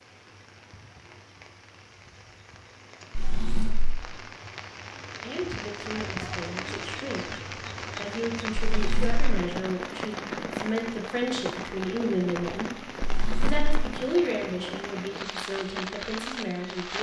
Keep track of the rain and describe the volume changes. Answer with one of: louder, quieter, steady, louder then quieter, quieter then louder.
louder.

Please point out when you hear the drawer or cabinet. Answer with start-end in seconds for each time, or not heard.
3.1-4.0, 8.6-9.2, 13.0-13.8.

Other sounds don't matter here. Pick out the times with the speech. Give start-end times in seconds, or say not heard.
5.2-16.9.